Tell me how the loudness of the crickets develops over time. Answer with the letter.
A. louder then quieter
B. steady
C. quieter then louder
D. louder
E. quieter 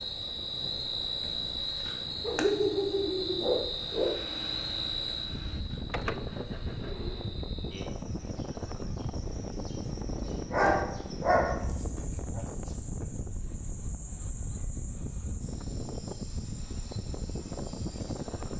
E.